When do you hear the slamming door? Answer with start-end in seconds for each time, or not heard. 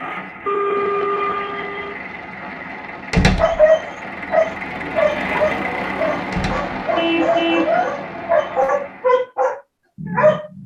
3.1-3.6, 6.3-6.7.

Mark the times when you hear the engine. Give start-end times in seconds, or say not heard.
0.0-9.2.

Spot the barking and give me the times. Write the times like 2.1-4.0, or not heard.
3.4-10.6.